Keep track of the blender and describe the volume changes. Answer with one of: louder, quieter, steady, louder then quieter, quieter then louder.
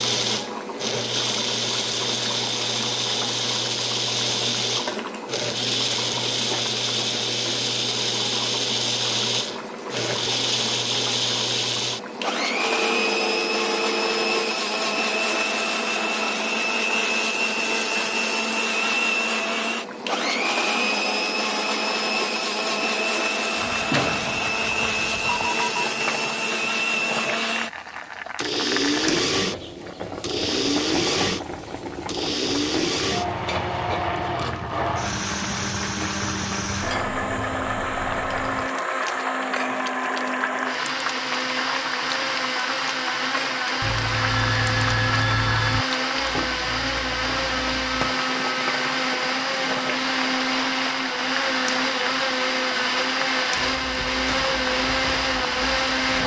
steady.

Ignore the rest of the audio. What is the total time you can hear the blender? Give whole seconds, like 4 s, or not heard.
56 s.